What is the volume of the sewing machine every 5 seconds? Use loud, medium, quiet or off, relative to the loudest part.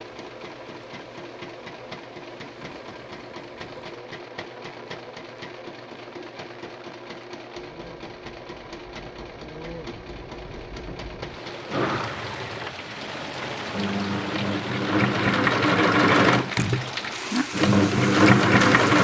quiet, quiet, quiet, loud.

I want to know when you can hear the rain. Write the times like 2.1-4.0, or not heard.
0.0-18.9.